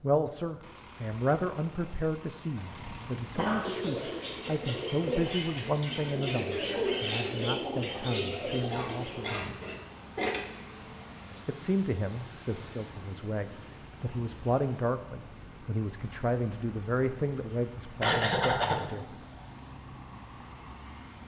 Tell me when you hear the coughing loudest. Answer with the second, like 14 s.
18 s.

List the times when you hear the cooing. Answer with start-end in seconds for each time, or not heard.
3.6-9.4.